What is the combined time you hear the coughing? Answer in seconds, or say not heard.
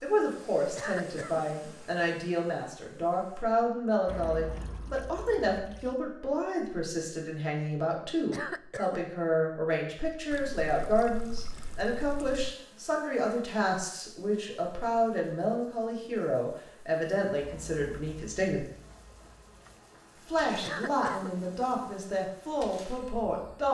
2 s.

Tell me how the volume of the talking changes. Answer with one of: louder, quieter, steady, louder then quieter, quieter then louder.
steady.